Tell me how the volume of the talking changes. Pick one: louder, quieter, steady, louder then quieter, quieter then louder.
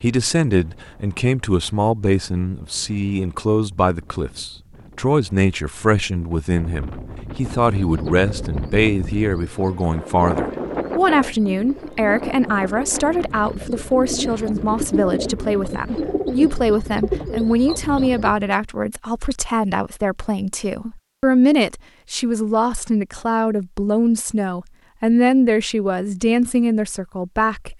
steady.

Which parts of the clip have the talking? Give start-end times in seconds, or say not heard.
0.0-27.7.